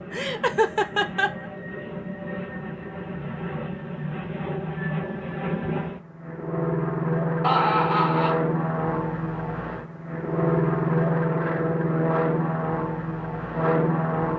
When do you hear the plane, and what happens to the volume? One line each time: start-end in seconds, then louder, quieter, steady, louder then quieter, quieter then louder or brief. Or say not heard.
0.0-14.3 louder.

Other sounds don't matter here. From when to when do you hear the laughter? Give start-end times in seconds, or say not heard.
0.1-1.4, 7.4-8.3.